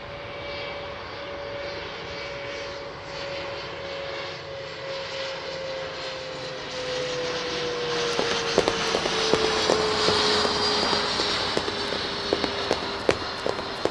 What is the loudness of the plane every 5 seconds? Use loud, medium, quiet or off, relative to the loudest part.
medium, loud, loud.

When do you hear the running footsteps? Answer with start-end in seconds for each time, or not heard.
8.1-13.8.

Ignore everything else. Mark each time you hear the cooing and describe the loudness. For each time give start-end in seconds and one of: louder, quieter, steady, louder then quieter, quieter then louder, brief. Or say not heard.
not heard.